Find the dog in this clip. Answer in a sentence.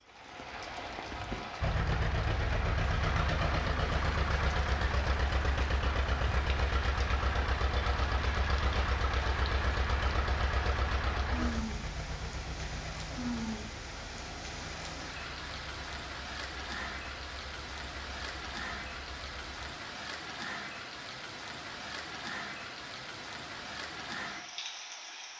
You can't hear the dog here.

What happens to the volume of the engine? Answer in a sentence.
The volume of the engine goes down.